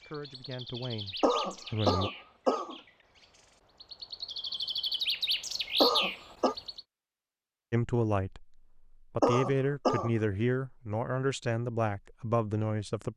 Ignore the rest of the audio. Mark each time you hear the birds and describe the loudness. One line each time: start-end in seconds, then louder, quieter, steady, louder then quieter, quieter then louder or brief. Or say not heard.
0.0-6.8 quieter then louder.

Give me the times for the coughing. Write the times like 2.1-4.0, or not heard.
1.2-2.8, 5.8-6.5, 9.2-10.1.